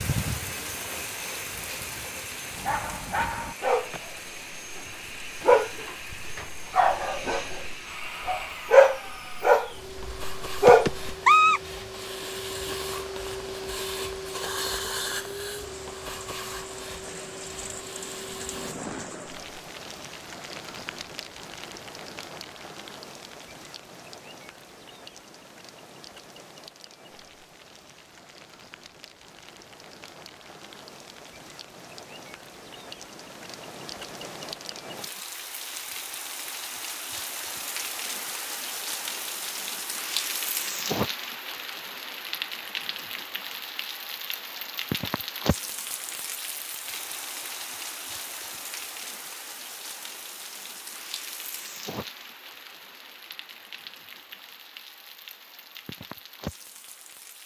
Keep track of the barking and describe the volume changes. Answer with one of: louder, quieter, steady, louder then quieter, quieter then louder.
louder.